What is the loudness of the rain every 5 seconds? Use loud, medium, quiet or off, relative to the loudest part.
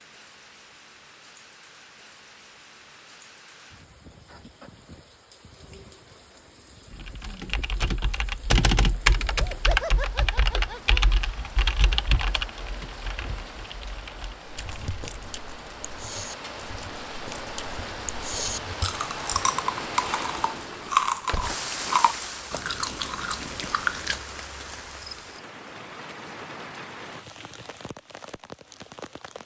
quiet, quiet, medium, loud, loud, medium.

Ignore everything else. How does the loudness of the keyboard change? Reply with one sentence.
The volume of the keyboard goes down.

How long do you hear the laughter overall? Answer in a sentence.
The laughter can be heard for 2 seconds in total.